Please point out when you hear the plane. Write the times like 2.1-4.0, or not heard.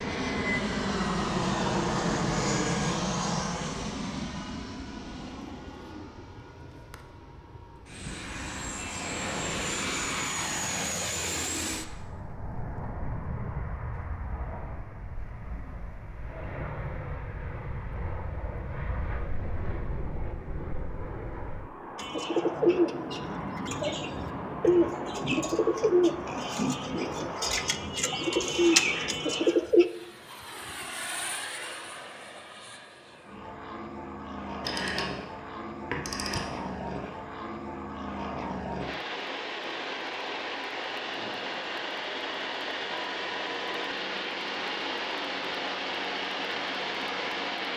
0.0-47.7.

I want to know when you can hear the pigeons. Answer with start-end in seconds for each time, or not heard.
21.9-29.9.